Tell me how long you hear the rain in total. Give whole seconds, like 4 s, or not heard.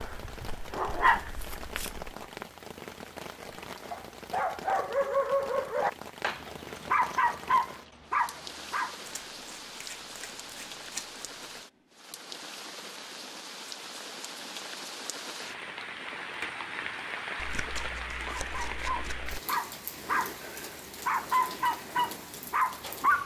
23 s.